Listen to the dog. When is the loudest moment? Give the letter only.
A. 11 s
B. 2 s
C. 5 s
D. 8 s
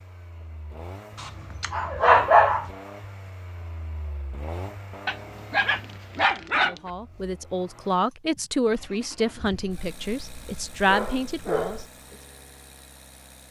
B.